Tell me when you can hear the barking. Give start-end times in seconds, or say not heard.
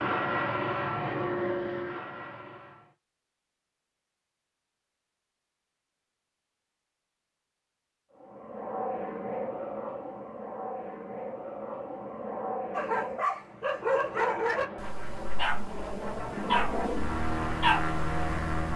12.7-18.7.